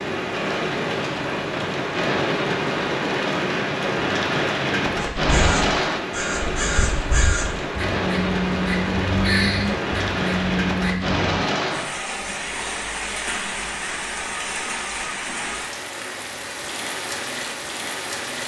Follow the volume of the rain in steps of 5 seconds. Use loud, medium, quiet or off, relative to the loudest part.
loud, loud, loud, medium.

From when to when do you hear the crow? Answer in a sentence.
You can hear the crow from 5.2 to 11.2 s.